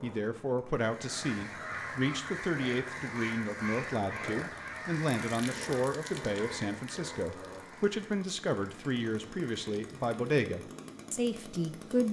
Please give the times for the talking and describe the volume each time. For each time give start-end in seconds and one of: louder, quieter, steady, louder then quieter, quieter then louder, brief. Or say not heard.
0.0-12.0 steady.